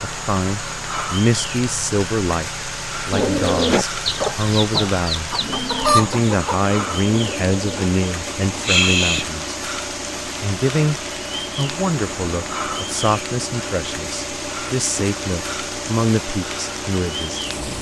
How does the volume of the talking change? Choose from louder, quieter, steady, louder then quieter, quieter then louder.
steady.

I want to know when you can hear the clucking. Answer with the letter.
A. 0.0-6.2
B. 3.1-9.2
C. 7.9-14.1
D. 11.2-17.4
B.